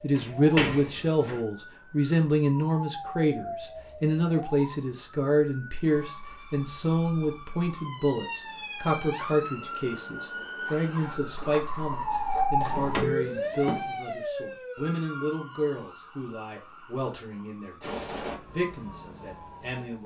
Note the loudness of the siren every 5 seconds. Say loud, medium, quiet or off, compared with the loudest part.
medium, medium, loud, medium.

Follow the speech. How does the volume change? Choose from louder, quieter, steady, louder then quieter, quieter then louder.
quieter.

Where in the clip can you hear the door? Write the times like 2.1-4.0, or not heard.
0.1-1.4, 12.7-13.9.